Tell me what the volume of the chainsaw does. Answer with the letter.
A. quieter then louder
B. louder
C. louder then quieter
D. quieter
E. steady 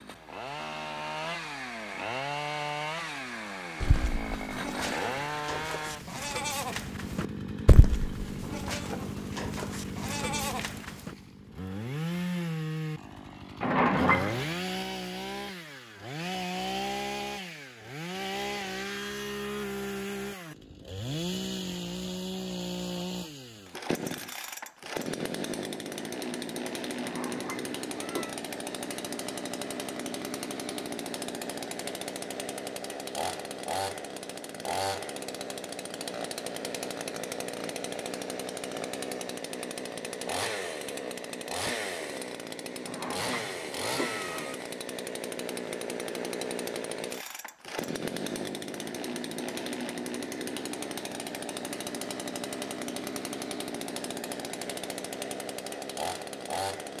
E.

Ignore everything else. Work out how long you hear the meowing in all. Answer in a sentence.
You can hear the meowing for 4 seconds altogether.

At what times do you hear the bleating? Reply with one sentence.
The bleating can be heard from 3.8 to 11.1 s.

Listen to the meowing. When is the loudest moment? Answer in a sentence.
The volume of the meowing peaks at 14 seconds.